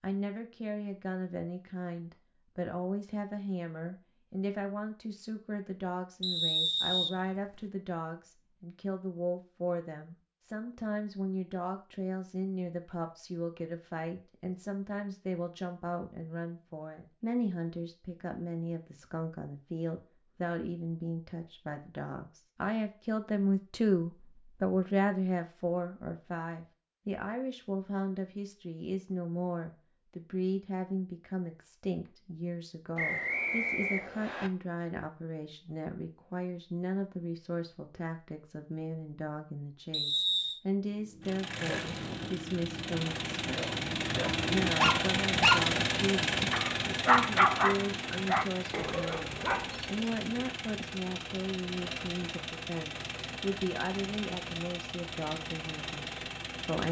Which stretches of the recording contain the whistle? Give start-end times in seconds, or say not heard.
6.2-7.6, 33.0-34.5, 39.9-40.6.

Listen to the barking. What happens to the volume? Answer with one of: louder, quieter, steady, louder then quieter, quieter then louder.
louder then quieter.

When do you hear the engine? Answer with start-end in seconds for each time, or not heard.
41.2-56.8.